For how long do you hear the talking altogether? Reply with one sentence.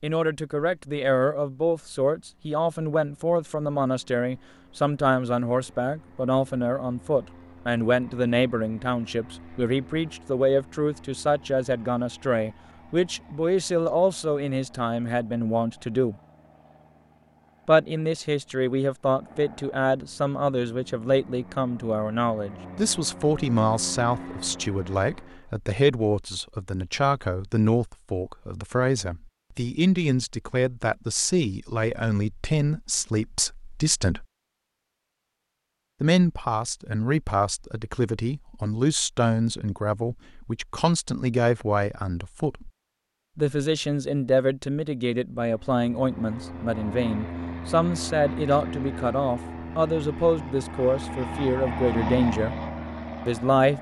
The talking can be heard for 49 seconds in total.